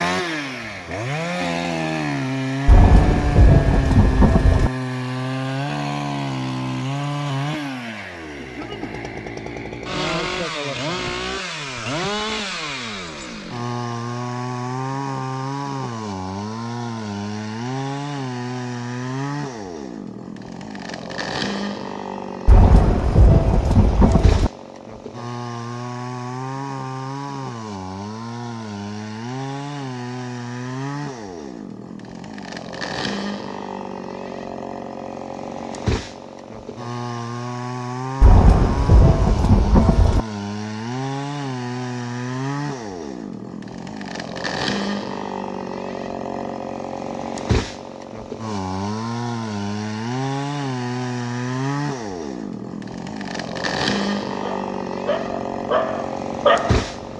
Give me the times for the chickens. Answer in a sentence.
The chickens can't be heard in this clip.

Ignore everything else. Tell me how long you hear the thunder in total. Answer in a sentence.
You can hear the thunder for 6 seconds altogether.